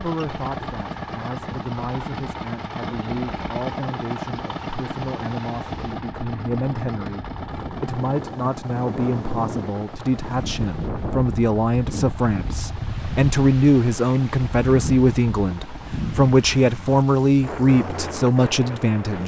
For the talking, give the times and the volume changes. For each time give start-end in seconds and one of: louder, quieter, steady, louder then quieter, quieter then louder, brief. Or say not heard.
0.0-19.2 louder.